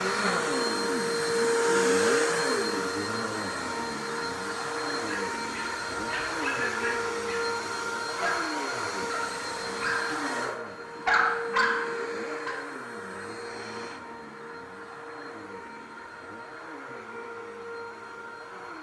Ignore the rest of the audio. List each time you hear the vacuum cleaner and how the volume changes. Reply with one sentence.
You can hear the vacuum cleaner from 0.0 to 18.7 s, getting quieter.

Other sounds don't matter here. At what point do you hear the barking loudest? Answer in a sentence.
The volume of the barking peaks at 11 seconds.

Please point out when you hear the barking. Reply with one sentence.
You can hear the barking from 5.0 to 12.6 s.